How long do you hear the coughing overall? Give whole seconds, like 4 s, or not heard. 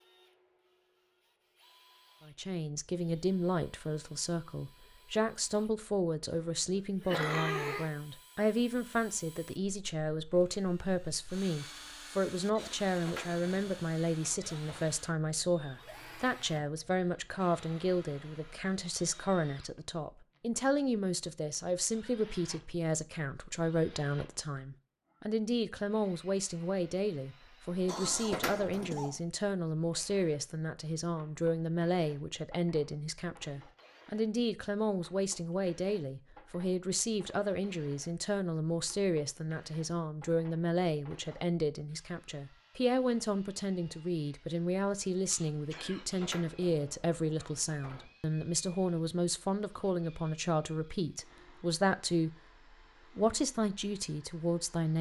3 s.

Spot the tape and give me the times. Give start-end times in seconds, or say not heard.
not heard.